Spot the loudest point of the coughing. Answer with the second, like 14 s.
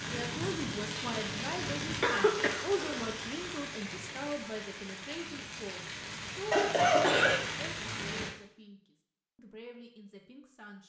7 s.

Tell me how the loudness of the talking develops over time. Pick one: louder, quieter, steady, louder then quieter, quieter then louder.
quieter.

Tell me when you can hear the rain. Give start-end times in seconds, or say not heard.
0.0-8.3.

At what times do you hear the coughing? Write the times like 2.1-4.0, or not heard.
2.0-3.1, 6.5-7.4.